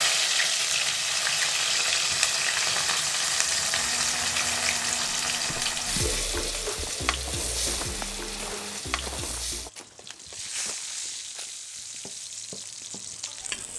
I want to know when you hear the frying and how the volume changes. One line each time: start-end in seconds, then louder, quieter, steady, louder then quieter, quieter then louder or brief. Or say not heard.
0.0-13.7 quieter.